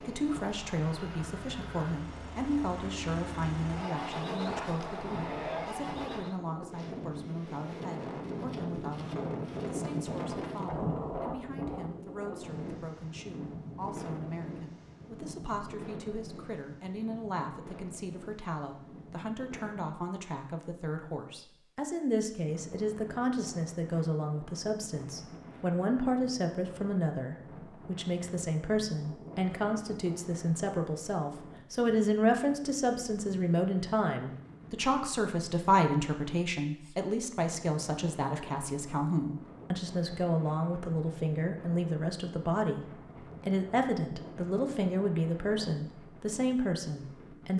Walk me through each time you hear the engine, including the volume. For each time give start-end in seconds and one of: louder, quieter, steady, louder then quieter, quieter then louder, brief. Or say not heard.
0.0-6.4 louder.